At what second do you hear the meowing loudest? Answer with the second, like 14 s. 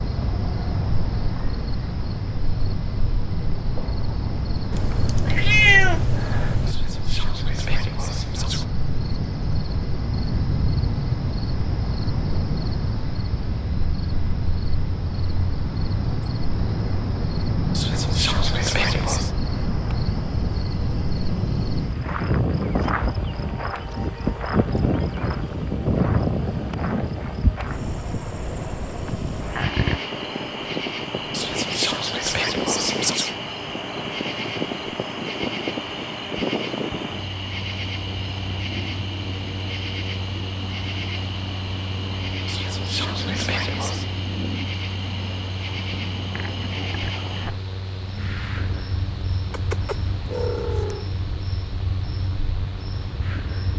6 s.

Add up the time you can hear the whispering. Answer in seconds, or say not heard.
7 s.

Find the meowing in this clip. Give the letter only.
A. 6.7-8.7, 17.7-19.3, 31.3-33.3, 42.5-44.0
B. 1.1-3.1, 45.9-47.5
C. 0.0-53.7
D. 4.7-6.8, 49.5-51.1
D.